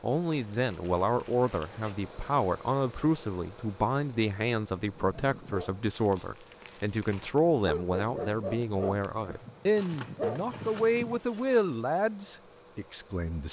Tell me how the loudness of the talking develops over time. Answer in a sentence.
The loudness of the talking stays about the same.